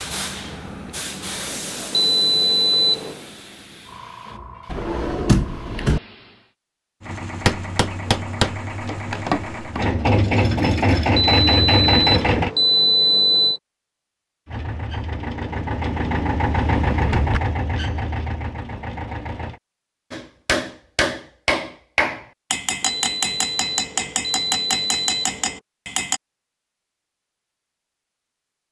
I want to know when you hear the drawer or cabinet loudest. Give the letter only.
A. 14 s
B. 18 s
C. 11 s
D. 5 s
D.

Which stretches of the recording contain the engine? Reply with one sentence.
You can hear the engine from 7.0 to 12.6 s and from 14.4 to 19.6 s.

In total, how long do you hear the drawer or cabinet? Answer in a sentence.
You can hear the drawer or cabinet for 2 seconds altogether.